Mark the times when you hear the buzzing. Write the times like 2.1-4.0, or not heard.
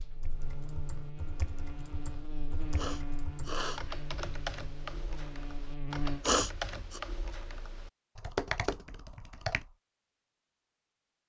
0.0-6.2.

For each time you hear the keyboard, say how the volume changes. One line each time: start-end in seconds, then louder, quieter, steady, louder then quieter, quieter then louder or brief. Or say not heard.
0.2-9.7 louder.